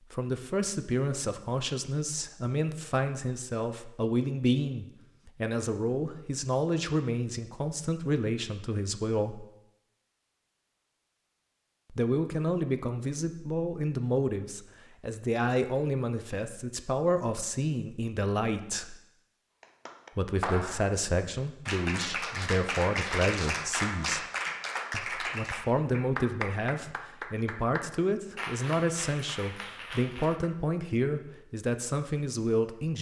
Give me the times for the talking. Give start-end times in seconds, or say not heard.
0.1-9.4, 11.9-18.9, 20.1-24.2, 24.9-32.9.